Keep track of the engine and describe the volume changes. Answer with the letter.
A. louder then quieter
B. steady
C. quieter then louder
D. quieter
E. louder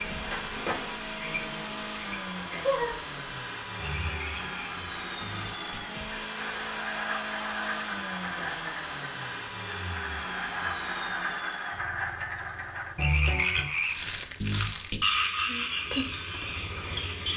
D.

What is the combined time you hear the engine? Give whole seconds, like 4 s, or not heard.
17 s.